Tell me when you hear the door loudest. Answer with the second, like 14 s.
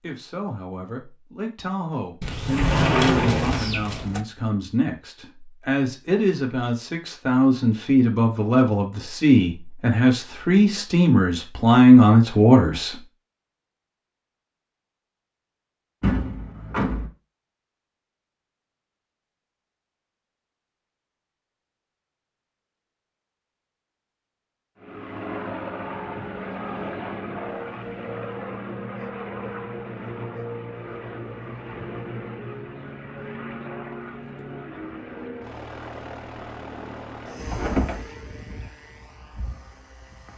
3 s.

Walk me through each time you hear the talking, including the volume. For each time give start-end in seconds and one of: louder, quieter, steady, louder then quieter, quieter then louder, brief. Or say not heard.
0.0-12.9 louder.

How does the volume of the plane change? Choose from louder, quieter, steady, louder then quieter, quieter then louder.
quieter.